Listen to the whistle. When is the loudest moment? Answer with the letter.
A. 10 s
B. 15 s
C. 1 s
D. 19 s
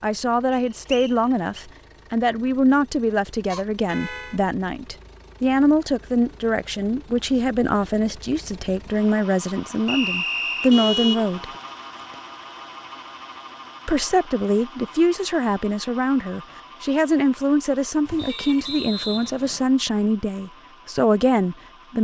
A.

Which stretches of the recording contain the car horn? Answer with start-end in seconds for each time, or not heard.
3.5-4.4, 10.7-12.2, 18.1-18.8.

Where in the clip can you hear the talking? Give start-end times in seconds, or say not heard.
0.0-11.4, 13.8-21.9.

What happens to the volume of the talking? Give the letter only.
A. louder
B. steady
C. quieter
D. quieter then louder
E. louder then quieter
B.